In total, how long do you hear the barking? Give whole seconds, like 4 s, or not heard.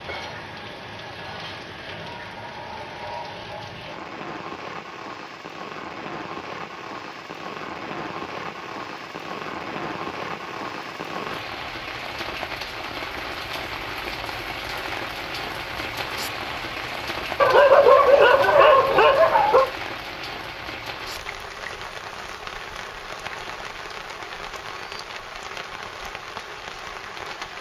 2 s.